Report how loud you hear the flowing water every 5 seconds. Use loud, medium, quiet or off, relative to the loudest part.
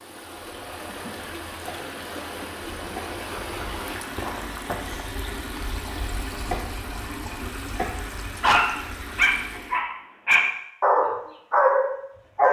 loud, loud, off.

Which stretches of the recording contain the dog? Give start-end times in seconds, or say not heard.
8.4-12.4.